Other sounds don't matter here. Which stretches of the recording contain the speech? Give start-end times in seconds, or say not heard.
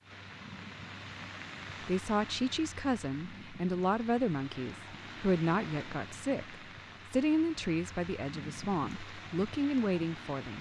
1.8-10.5.